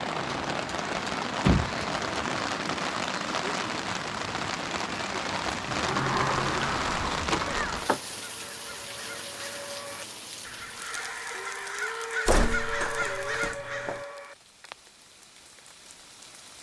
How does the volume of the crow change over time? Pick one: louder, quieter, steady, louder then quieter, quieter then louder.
louder.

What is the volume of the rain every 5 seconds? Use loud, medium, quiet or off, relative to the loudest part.
loud, loud, quiet, quiet.